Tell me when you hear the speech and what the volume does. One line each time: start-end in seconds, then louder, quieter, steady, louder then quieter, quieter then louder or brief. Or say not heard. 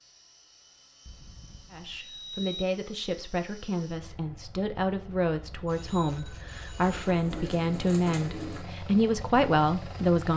1.7-10.3 louder.